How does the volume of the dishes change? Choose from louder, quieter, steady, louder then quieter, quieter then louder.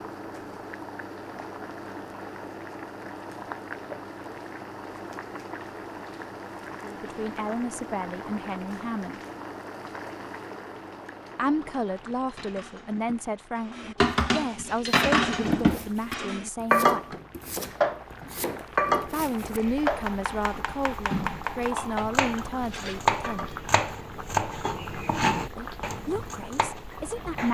louder then quieter.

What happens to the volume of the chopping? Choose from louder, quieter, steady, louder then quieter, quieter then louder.
louder.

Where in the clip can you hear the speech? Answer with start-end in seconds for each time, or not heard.
6.8-9.2, 11.3-17.1, 19.1-23.6, 25.6-27.4.